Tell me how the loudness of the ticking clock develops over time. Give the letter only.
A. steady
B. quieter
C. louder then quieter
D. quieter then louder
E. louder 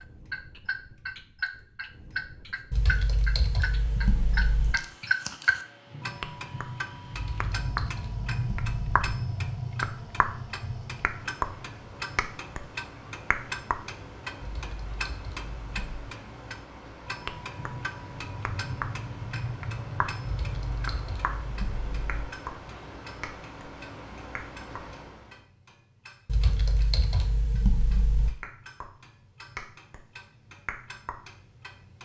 B.